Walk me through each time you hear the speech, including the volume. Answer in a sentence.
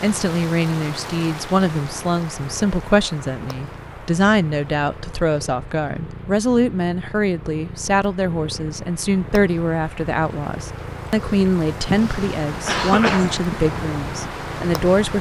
You can hear the speech from 0.0 to 15.1 s, at a steady volume.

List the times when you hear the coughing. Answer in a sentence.
You can hear the coughing from 11.8 to 13.7 s.